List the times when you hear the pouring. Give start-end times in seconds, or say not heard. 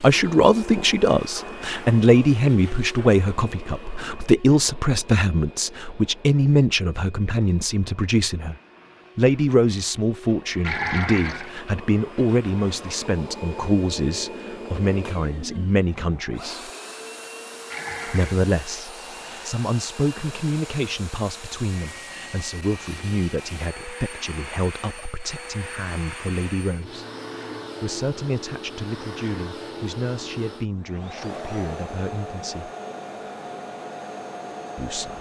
10.6-11.5, 17.7-18.4.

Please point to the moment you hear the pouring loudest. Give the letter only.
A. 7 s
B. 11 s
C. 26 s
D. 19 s
B.